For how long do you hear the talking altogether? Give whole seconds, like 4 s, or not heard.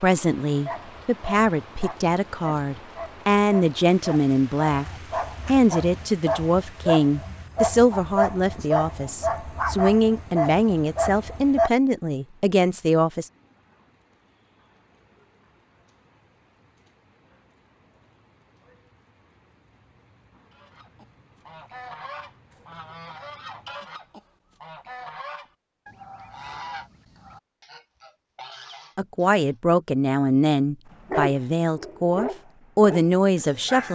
18 s.